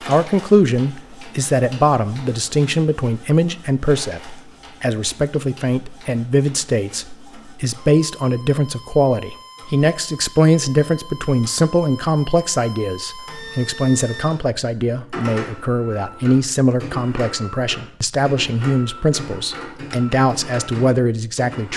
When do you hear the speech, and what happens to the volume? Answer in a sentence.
You can hear the speech from 0.1 to 21.7 s, at a steady volume.